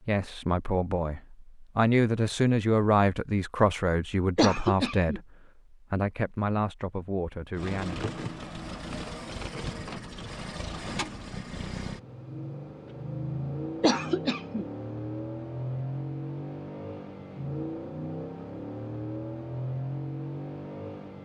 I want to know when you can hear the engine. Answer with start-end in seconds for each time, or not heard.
7.5-21.2.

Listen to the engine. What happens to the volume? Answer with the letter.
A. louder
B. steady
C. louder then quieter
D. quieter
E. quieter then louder
B.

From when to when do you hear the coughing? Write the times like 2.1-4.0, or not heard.
4.3-5.2, 13.8-14.7.